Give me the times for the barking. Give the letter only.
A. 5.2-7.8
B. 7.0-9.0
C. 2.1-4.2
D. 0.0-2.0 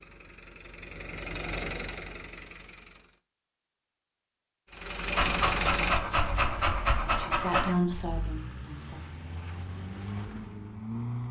A.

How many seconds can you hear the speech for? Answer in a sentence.
The speech can be heard for 2 seconds in total.